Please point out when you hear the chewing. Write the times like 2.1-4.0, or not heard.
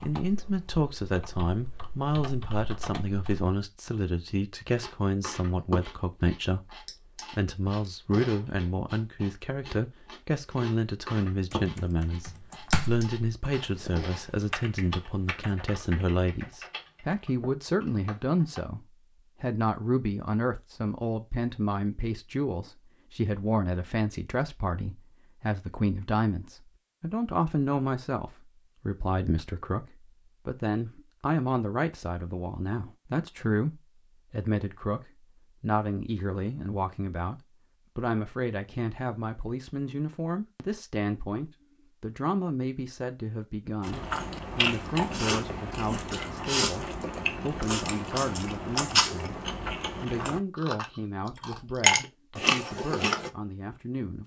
4.8-14.2, 43.8-53.3.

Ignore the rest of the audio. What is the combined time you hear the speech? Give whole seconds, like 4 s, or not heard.
54 s.